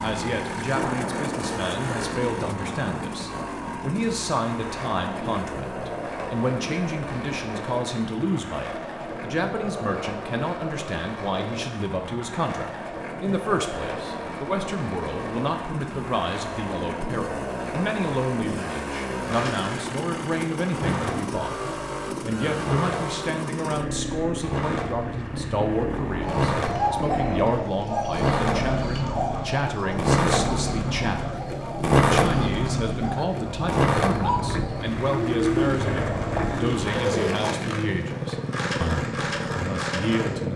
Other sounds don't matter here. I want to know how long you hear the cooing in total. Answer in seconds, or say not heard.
11 s.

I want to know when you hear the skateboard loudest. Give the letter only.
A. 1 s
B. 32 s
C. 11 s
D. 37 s
B.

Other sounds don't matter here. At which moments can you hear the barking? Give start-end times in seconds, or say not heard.
not heard.